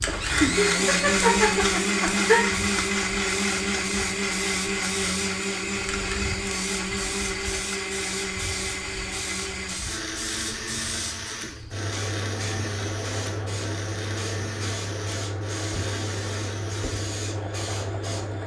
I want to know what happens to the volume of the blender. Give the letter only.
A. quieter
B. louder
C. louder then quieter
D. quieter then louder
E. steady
A.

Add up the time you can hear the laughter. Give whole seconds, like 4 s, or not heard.
2 s.